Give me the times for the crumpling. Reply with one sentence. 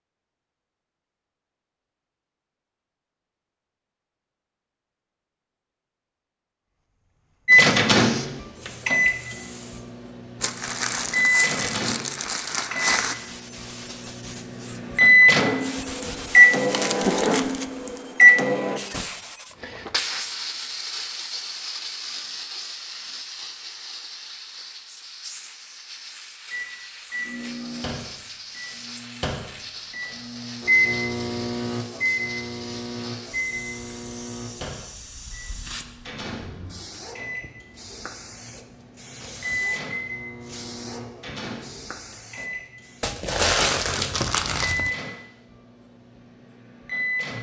The crumpling can be heard from 10.4 to 13.2 s, from 16.7 to 17.6 s and from 43.0 to 44.9 s.